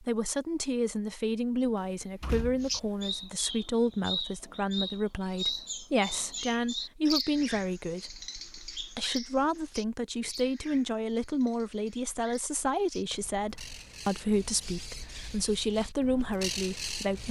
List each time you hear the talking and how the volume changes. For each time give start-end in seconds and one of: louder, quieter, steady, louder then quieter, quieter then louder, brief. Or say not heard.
0.0-17.2 steady.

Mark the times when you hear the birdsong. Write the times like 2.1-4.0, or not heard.
2.6-17.2.